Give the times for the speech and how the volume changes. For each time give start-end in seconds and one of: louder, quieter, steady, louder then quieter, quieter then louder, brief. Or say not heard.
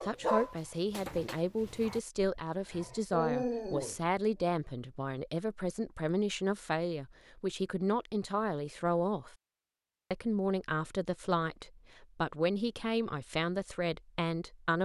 0.0-9.3 steady
10.1-14.8 steady.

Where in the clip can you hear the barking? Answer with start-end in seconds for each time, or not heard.
0.0-4.0.